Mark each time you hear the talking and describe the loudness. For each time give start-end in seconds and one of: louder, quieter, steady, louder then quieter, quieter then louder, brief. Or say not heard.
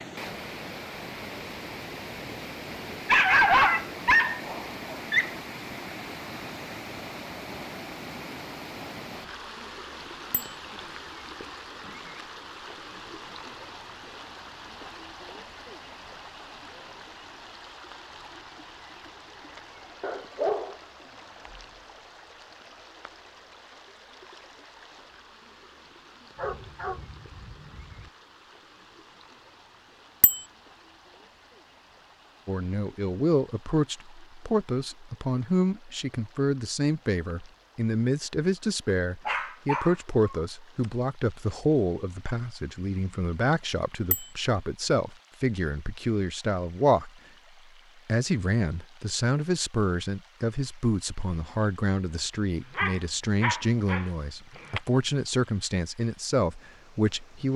32.5-47.1 steady
48.0-57.5 steady.